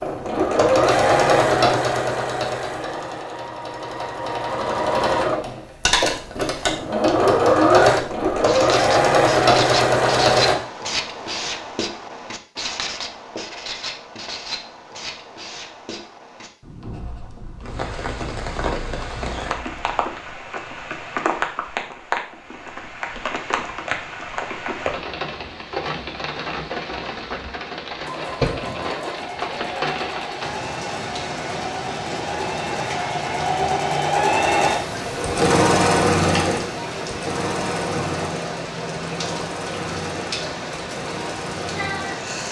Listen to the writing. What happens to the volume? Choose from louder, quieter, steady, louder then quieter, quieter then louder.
quieter.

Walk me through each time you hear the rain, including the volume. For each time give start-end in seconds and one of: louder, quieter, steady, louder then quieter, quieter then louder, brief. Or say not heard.
17.6-42.4 steady.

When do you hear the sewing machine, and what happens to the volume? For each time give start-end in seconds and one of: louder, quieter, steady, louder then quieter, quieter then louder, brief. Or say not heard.
0.0-10.6 quieter then louder
28.1-42.4 louder then quieter.